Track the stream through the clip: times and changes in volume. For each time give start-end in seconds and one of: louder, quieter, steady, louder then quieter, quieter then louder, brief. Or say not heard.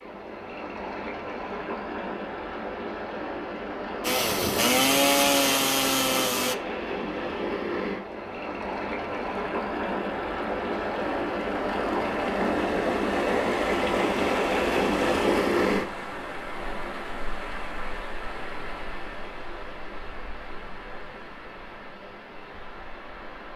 0.0-23.5 louder then quieter.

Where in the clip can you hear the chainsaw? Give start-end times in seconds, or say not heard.
4.0-6.5.